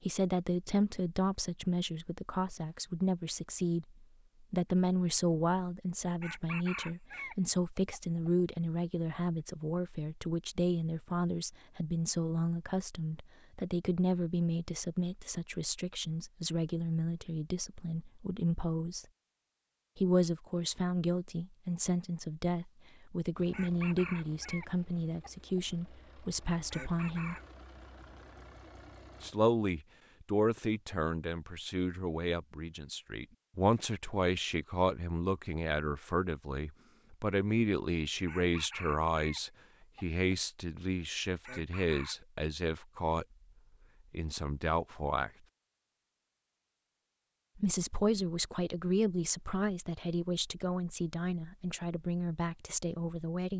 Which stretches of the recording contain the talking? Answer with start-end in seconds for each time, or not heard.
0.0-19.1, 19.9-27.4, 29.2-43.2, 44.1-45.3, 47.5-53.5.